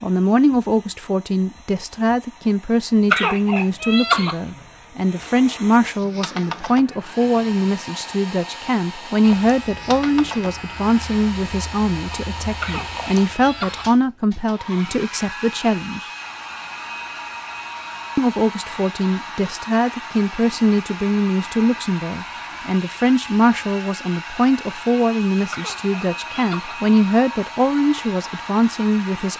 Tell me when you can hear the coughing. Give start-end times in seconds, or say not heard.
3.1-4.6, 12.6-13.8, 25.5-27.0.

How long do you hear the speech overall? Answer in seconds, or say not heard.
27 s.